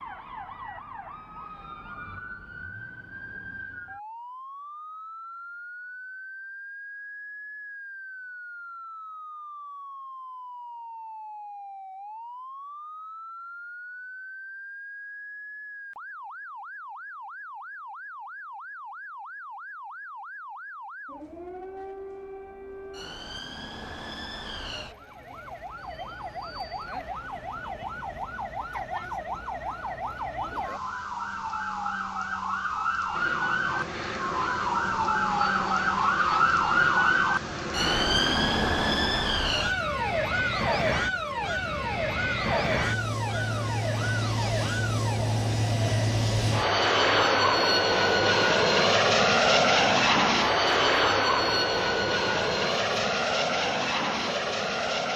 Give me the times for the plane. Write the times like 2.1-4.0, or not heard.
33.1-55.1.